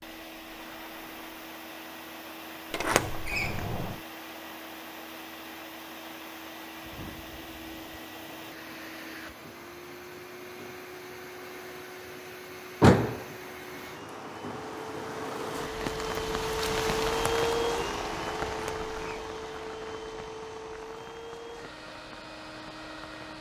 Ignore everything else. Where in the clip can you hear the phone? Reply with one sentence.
You can't hear the phone here.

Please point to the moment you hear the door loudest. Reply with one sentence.
The loudest moment of the door is at 13 seconds.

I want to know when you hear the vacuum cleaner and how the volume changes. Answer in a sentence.
You can hear the vacuum cleaner from 0.0 to 23.3 s, getting louder then quieter.